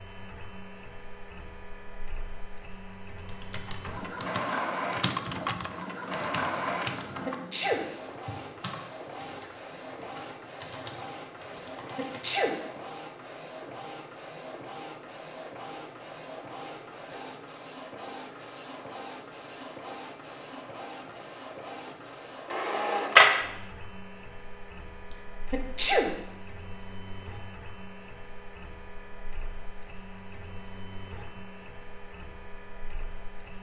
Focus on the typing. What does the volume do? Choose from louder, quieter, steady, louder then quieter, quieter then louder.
quieter.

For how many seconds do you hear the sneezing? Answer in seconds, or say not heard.
2 s.